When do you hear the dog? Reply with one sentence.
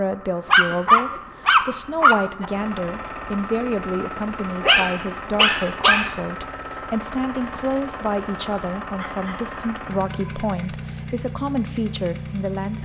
The dog can be heard from 0.5 to 2.5 s, from 4.6 to 6.1 s and from 8.9 to 10.6 s.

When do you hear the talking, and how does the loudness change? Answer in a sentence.
The talking can be heard from 0.0 to 12.8 s, at a steady volume.